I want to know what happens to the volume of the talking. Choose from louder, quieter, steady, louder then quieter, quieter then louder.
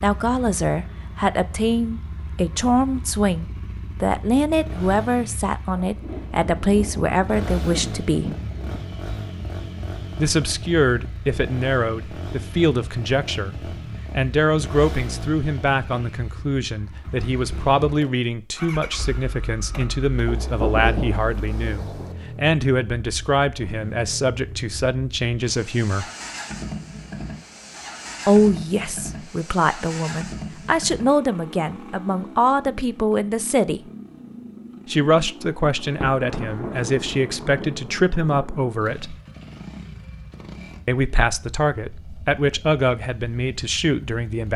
steady.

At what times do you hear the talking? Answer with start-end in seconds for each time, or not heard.
0.0-8.3, 10.2-26.1, 28.2-33.8, 34.9-39.1, 40.9-44.5.